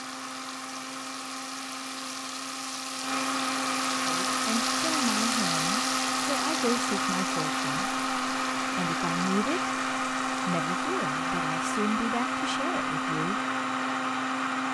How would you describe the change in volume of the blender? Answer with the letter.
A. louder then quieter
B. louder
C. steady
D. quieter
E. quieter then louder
B.